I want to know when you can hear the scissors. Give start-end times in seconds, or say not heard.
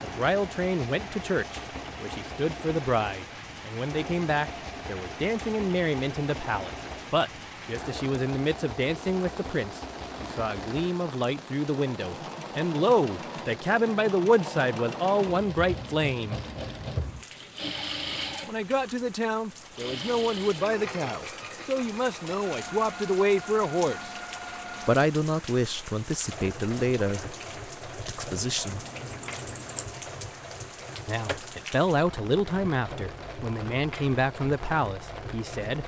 28.6-29.9.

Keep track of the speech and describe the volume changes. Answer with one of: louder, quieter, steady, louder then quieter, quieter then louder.
steady.